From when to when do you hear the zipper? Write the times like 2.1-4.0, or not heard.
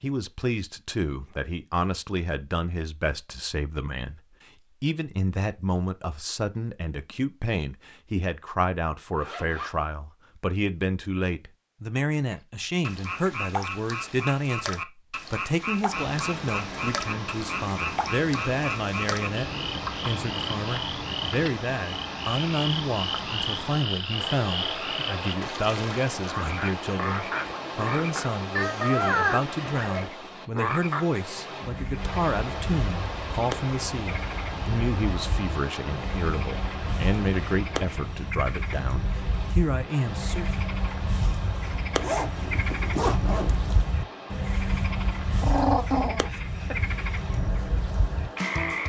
9.2-9.8, 29.6-30.1, 42.0-43.9.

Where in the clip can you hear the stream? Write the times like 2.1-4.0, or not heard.
15.8-48.8.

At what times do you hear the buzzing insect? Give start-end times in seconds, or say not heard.
not heard.